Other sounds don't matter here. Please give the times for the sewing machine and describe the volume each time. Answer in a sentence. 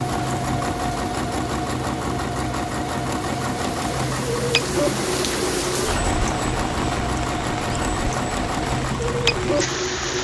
You can hear the sewing machine from 0.0 to 10.2 s, at a steady volume.